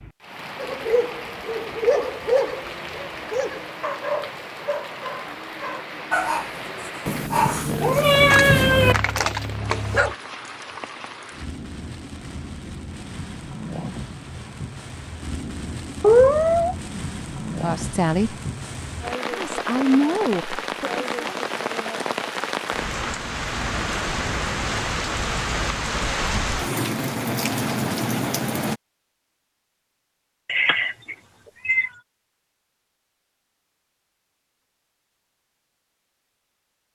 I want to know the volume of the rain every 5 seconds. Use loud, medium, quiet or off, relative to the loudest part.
medium, medium, medium, medium, loud, loud, off, off.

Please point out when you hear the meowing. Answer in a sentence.
The meowing can be heard from 7.0 to 8.9 s, from 16.0 to 17.1 s and from 30.4 to 31.9 s.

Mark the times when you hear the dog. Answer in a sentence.
You can hear the dog from 0.6 to 10.2 s.